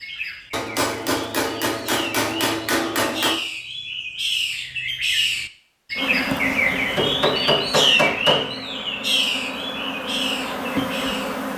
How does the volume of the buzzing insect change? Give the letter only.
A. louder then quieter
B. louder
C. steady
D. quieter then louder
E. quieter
D.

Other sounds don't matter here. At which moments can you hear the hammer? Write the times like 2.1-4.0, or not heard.
0.5-3.4, 6.7-8.6.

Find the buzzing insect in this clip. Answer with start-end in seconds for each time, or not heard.
6.0-11.5.